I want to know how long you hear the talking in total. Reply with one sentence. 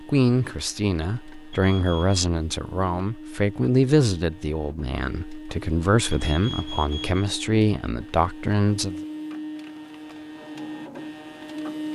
The talking can be heard for 9 seconds in total.